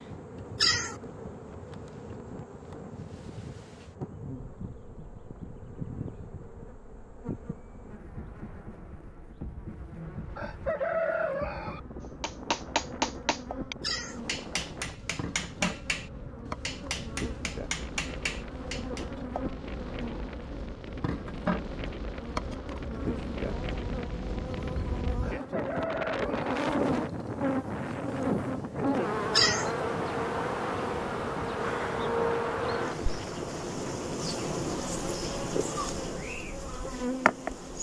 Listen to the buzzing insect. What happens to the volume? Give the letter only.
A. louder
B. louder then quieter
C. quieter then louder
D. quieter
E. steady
A.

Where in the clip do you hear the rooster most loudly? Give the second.
11 s.